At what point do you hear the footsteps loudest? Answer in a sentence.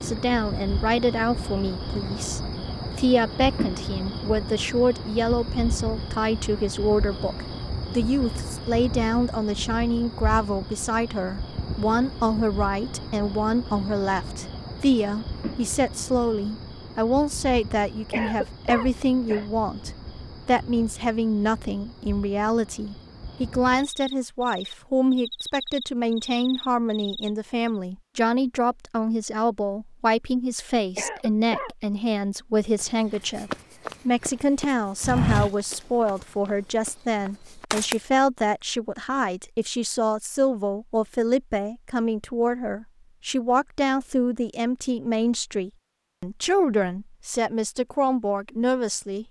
The volume of the footsteps peaks at 35 seconds.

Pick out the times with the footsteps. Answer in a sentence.
You can hear the footsteps from 32.8 to 38.0 s.